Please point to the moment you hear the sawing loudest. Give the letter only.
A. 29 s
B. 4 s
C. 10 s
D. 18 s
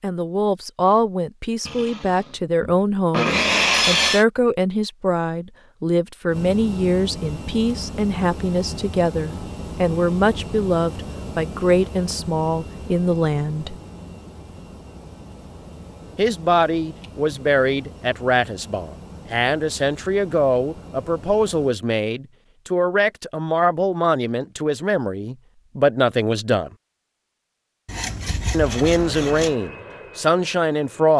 B.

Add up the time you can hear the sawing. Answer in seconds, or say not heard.
4 s.